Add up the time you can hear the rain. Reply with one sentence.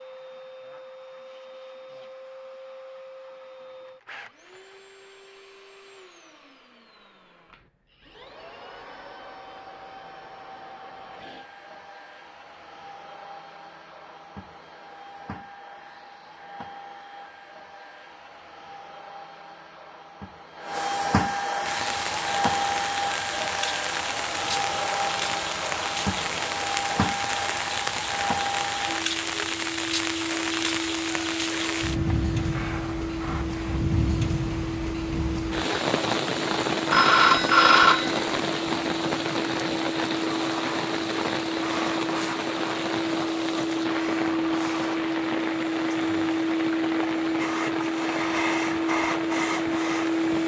The rain can be heard for 29 seconds in total.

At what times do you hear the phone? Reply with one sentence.
You can hear the phone from 36.9 to 38.2 s.